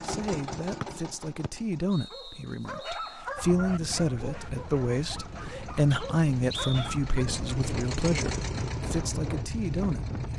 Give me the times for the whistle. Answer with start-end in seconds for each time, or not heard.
0.8-3.1, 5.9-7.0.